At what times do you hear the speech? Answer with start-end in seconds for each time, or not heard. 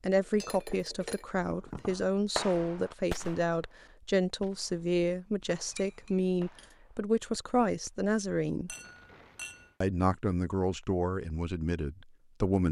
0.0-8.8, 9.8-12.6.